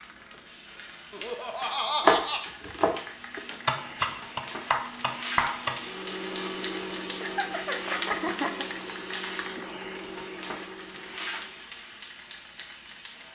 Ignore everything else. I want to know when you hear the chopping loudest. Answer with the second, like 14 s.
2 s.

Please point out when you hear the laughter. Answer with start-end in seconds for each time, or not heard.
1.1-2.5, 7.2-8.7.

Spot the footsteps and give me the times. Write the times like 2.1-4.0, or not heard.
not heard.